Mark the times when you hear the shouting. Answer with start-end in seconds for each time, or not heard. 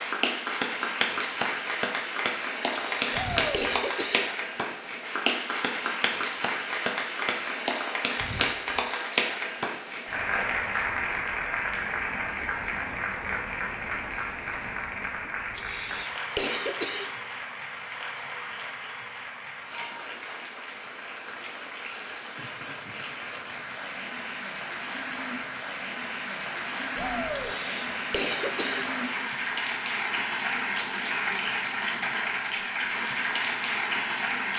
3.1-3.7, 26.9-27.6.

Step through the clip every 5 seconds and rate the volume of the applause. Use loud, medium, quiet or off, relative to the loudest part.
loud, loud, loud, medium, medium, loud, loud.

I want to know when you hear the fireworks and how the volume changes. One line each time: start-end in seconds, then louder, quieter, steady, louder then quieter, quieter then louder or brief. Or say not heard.
not heard.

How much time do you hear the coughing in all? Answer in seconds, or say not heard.
5 s.